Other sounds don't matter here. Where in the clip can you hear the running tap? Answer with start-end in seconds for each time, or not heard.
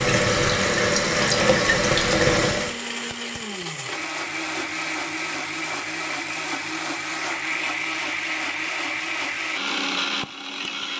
0.0-2.8.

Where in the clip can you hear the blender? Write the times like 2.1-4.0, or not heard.
0.0-10.9.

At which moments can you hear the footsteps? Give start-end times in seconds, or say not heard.
not heard.